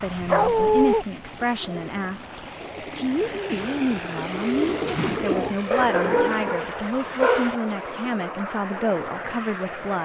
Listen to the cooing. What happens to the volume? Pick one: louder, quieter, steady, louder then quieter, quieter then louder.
louder.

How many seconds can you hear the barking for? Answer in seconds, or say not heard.
3 s.